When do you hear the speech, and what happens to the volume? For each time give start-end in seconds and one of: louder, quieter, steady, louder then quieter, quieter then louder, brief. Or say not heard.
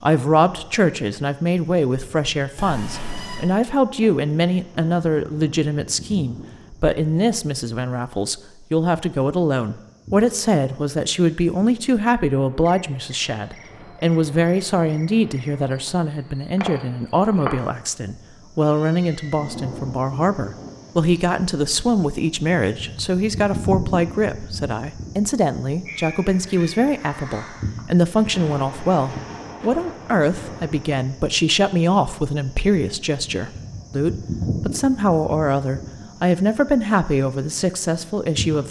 0.0-38.6 steady.